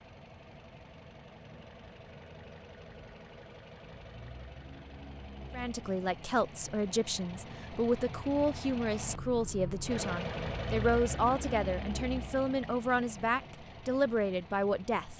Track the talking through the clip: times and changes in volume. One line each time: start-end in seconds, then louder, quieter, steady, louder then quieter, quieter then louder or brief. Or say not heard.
5.5-15.1 steady.